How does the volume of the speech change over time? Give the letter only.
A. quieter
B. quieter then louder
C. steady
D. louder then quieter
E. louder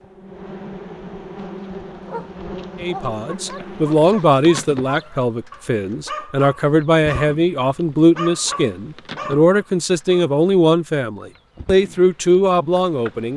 C.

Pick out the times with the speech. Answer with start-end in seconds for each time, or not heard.
2.8-13.3.